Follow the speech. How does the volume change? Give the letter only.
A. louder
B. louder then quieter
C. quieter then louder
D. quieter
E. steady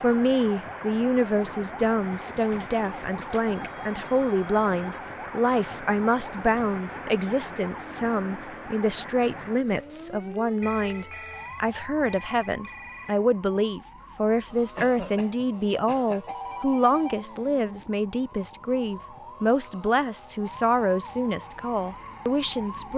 E.